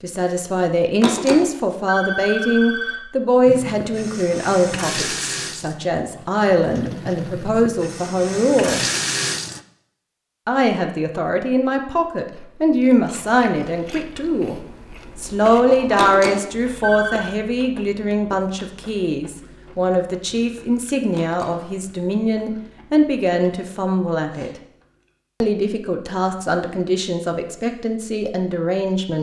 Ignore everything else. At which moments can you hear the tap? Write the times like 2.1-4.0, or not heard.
3.5-9.6.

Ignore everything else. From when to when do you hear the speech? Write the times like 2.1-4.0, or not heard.
0.0-8.8, 10.4-14.6, 15.2-24.5, 25.4-29.1.